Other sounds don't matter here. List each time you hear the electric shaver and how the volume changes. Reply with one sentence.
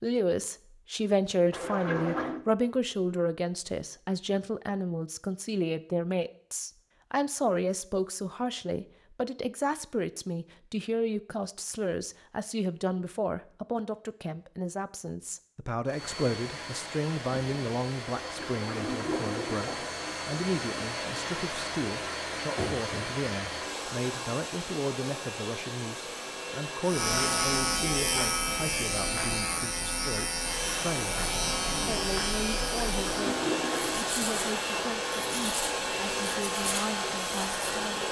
You can hear the electric shaver from 26.8 to 38.0 s, getting quieter.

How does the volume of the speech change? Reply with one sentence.
The loudness of the speech goes down.